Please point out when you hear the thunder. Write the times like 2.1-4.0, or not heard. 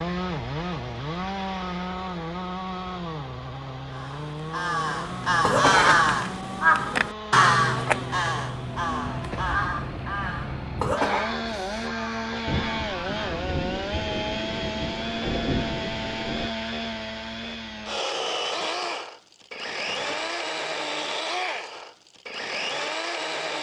12.4-16.5.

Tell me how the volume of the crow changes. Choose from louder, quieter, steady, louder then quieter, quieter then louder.
quieter.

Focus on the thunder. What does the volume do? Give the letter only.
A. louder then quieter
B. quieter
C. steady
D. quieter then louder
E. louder
E.